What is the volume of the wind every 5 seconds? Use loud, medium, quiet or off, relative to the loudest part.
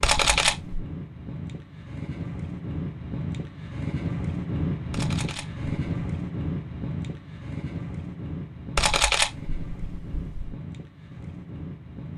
loud, loud, medium.